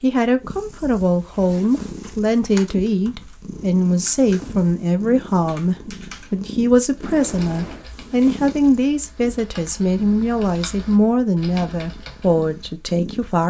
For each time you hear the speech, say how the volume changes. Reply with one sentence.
You can hear the speech from 0.0 to 13.4 s, at a steady volume.